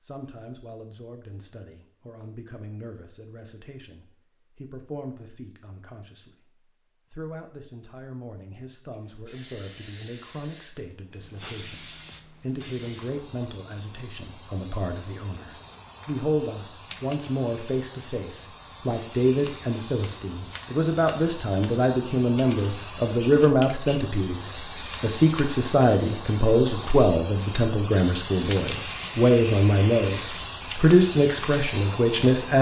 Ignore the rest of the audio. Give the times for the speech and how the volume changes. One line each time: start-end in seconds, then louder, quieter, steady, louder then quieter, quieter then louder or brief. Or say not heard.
0.0-6.5 steady
7.1-32.5 louder.